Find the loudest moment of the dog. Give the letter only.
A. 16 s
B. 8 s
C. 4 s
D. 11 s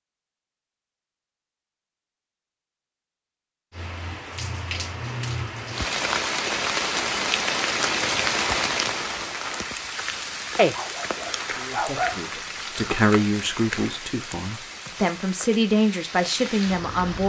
D.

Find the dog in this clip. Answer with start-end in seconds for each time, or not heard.
10.6-12.4.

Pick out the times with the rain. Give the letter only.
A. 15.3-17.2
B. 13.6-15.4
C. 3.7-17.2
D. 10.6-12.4
C.